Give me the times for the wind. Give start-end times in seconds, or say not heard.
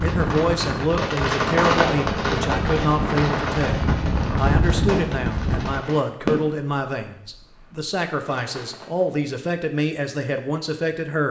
0.0-5.8.